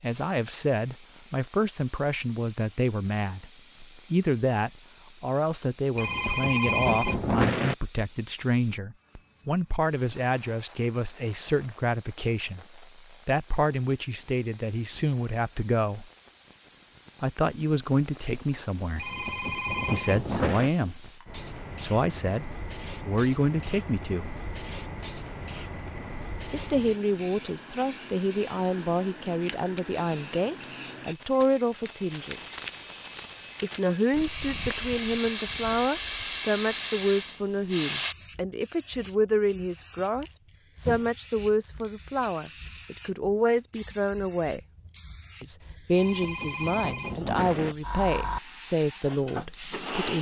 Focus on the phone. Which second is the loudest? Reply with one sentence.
The volume of the phone peaks at 7 seconds.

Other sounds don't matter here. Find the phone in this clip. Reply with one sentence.
You can hear the phone from 6.0 to 7.8 s, from 18.9 to 20.7 s and from 45.9 to 47.8 s.